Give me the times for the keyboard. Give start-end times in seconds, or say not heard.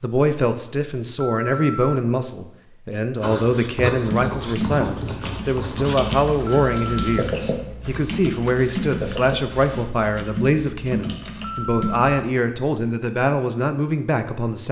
4.0-12.2.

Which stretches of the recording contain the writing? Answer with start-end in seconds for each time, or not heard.
3.1-9.9.